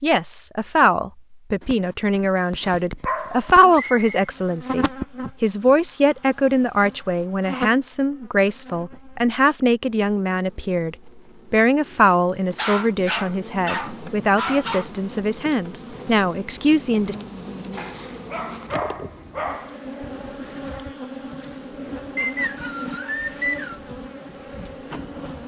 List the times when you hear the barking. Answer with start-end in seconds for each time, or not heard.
1.6-3.7, 12.6-14.9, 17.8-19.8.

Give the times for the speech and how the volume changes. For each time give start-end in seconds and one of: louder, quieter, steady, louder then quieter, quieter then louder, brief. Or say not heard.
0.0-17.1 steady.